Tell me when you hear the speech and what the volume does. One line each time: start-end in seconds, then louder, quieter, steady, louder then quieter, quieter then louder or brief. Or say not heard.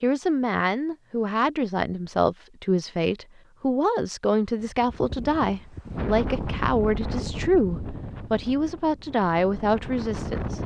0.0-10.6 steady.